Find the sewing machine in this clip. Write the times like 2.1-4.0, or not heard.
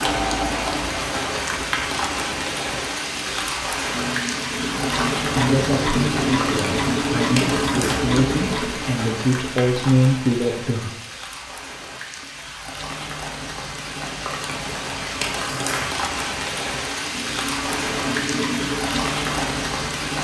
0.0-9.0, 16.8-20.1.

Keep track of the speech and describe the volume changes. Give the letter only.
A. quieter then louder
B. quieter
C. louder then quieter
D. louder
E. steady
D.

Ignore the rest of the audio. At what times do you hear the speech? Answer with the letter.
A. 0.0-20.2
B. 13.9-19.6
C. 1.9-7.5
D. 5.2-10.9
D.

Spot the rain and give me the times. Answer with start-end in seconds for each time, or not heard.
0.0-20.2.